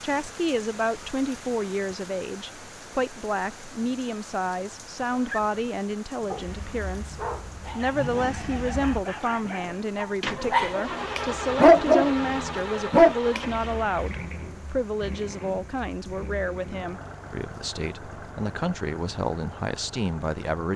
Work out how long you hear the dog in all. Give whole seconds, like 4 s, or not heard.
8 s.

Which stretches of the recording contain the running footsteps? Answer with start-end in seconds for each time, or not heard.
not heard.